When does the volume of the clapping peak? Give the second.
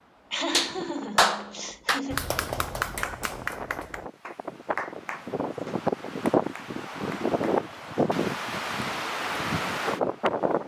1 s.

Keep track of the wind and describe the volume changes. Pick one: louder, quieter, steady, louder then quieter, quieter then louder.
louder.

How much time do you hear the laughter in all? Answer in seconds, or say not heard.
2 s.